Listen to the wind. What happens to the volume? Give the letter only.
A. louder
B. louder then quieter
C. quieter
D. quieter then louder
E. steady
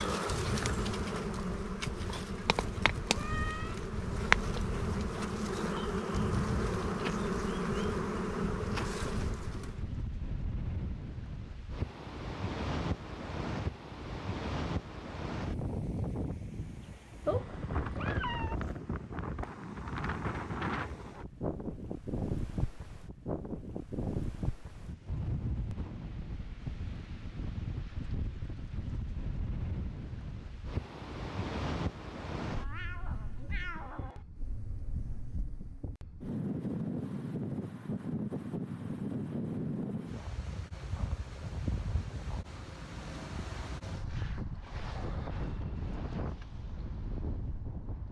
E.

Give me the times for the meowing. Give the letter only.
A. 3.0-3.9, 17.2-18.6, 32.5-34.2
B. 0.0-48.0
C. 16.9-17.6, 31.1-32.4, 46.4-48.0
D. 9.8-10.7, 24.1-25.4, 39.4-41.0
A.